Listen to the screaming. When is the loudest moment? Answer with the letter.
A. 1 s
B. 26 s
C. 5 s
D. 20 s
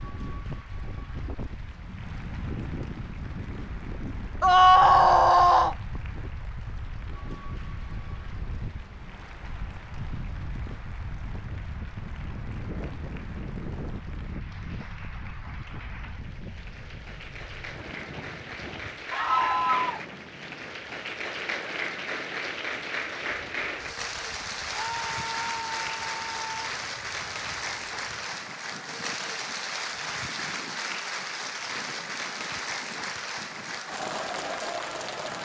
C.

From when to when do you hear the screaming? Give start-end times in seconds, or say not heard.
4.4-5.8, 19.1-20.0, 24.8-26.7.